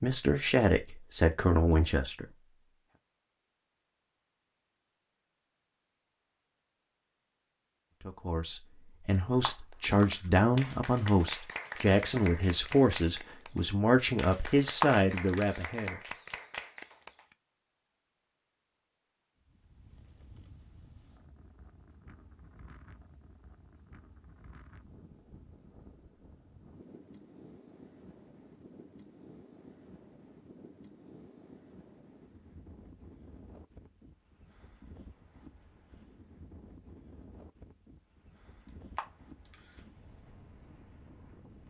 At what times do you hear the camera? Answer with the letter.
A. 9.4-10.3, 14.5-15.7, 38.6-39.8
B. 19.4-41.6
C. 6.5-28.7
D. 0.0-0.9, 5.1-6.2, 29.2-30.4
A.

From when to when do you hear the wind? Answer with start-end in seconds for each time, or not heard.
19.4-41.6.